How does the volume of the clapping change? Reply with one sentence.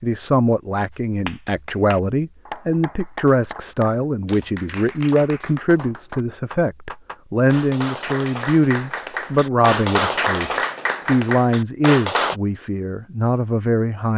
The loudness of the clapping goes up.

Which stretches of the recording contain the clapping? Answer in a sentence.
You can hear the clapping from 1.2 to 12.3 s.